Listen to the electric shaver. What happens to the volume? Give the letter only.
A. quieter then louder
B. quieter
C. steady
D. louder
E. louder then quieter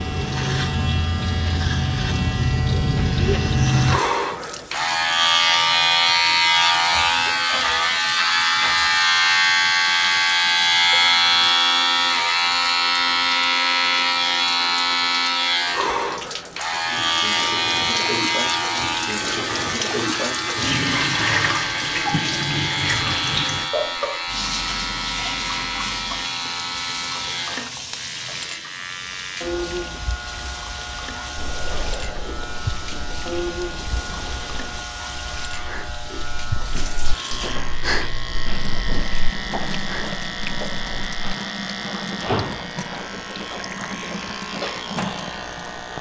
B.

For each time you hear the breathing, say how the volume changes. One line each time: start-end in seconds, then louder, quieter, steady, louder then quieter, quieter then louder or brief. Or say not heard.
31.4-41.2 louder then quieter.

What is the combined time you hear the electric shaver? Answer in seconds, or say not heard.
46 s.